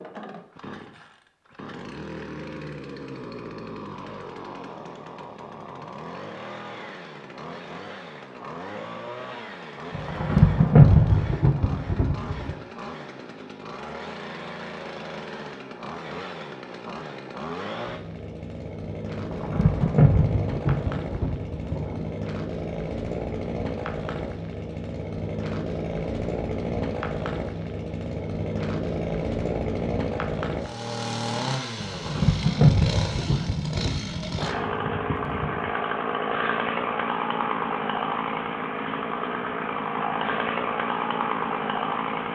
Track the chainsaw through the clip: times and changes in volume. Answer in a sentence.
The chainsaw can be heard from 0.0 to 42.3 s, getting louder.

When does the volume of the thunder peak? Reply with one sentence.
The loudest moment of the thunder is at 11 seconds.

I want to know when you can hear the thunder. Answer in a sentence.
The thunder can be heard from 9.9 to 12.6 s, from 19.1 to 22.1 s and from 31.8 to 35.7 s.